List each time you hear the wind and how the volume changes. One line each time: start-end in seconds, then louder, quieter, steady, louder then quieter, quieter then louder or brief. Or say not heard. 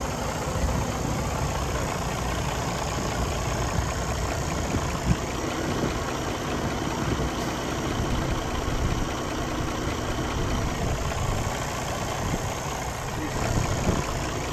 0.0-14.2 steady.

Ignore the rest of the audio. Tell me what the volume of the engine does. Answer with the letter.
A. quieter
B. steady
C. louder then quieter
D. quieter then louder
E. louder
B.